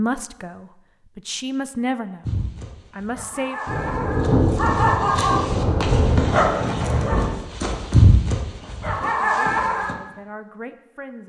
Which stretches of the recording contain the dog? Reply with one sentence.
You can hear the dog from 2.2 to 9.9 s.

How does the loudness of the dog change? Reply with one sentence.
The volume of the dog goes up.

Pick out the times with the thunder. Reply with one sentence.
The thunder can be heard from 3.6 to 7.3 s.